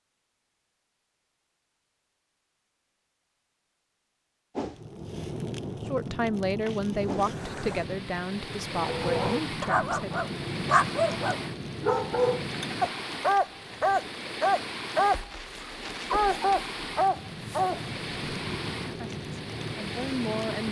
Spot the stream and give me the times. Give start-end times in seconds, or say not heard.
7.1-20.6.